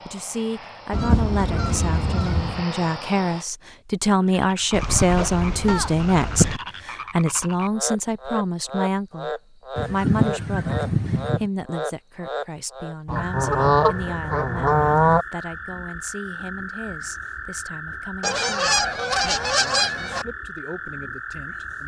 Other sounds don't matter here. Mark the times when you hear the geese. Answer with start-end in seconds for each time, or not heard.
0.9-2.6, 4.7-6.6, 9.8-11.5, 13.1-15.2, 18.2-20.2.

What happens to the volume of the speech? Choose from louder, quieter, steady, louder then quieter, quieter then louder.
quieter.